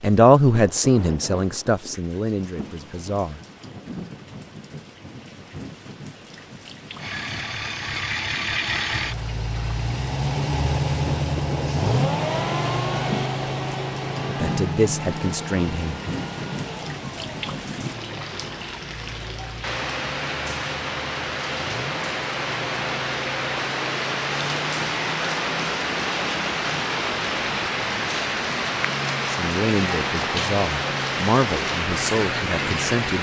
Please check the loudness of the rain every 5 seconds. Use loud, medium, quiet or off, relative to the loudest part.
quiet, quiet, medium, medium, loud, loud, loud.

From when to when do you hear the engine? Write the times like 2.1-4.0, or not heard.
7.0-32.9.